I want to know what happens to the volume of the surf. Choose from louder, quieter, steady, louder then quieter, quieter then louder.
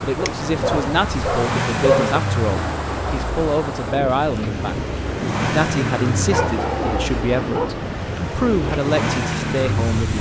steady.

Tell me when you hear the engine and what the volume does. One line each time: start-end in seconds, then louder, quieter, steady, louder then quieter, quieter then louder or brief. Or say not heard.
0.0-10.1 steady.